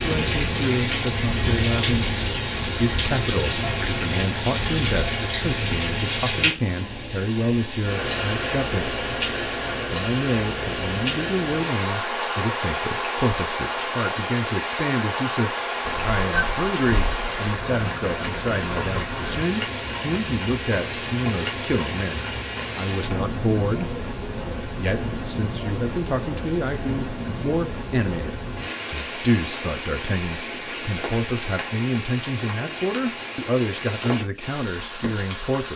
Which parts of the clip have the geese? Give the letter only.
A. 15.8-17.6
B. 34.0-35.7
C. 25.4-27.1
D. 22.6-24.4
A.